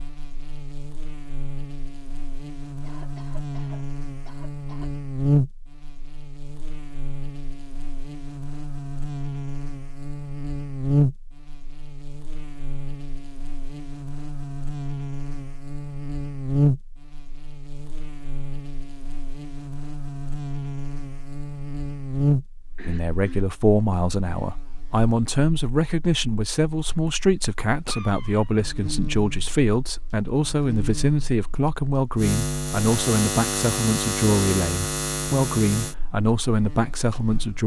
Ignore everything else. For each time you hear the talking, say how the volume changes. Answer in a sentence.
The talking can be heard from 22.9 to 37.6 s, at a steady volume.